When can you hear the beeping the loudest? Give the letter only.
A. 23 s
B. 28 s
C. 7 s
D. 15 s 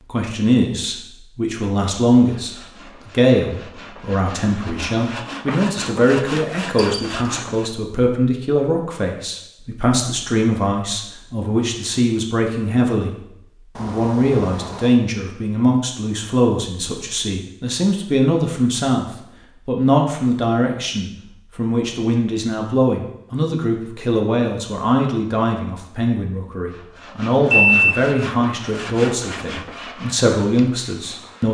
B.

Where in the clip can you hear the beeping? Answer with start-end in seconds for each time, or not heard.
6.3-7.0, 13.8-15.0, 27.5-28.0.